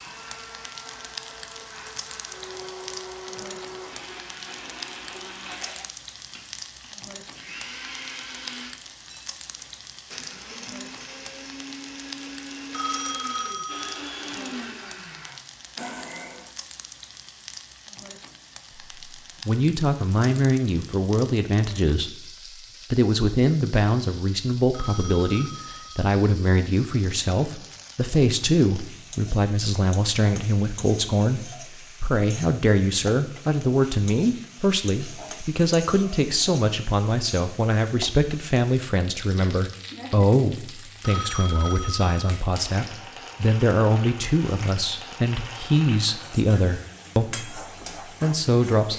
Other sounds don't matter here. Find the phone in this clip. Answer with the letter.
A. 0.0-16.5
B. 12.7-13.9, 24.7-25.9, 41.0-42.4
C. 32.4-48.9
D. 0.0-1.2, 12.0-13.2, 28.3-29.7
B.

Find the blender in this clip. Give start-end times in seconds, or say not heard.
0.0-16.5.